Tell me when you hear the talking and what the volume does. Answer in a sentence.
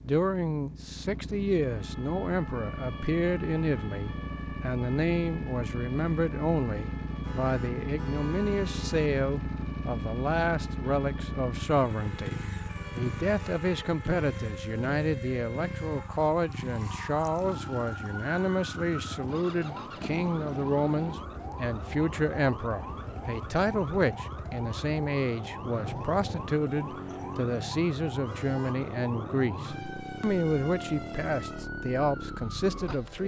You can hear the talking from 0.1 to 33.2 s, at a steady volume.